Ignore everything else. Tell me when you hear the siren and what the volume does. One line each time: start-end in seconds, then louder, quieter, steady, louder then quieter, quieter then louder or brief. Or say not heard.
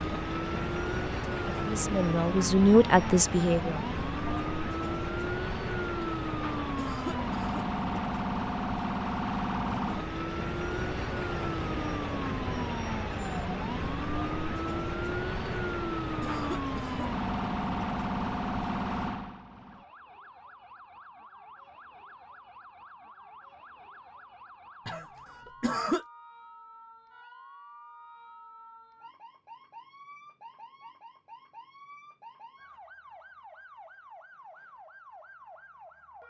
0.0-36.2 quieter.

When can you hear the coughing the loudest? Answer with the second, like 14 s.
26 s.